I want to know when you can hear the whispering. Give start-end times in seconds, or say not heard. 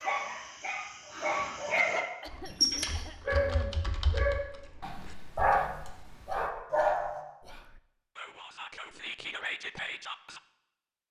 4.8-10.4.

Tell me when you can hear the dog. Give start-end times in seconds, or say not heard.
0.0-7.2.